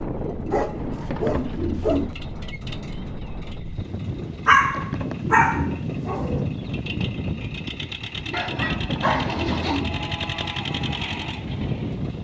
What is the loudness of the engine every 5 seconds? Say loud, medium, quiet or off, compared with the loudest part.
medium, loud, loud.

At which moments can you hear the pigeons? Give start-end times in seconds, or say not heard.
0.5-2.1, 4.3-6.0, 8.2-10.2.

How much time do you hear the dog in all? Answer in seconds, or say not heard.
5 s.